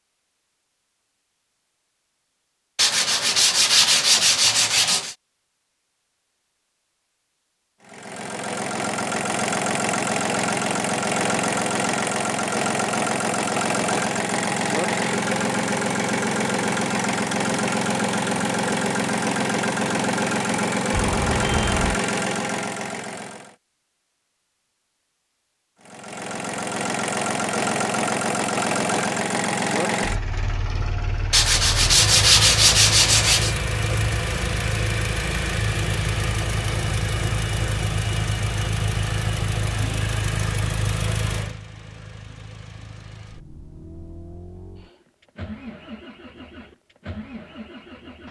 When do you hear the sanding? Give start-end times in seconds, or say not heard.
2.8-5.2, 31.3-33.5.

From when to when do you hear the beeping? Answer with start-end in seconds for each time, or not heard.
20.9-21.9.